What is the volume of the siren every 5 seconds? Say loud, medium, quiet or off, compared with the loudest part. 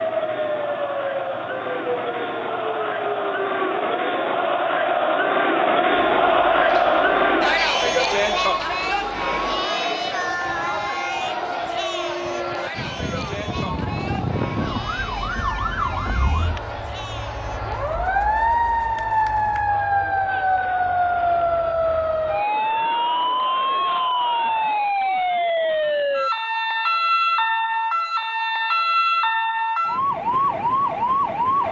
medium, quiet, medium, loud, loud, loud, loud.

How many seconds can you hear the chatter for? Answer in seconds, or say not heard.
25 s.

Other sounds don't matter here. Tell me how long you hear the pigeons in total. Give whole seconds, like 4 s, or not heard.
not heard.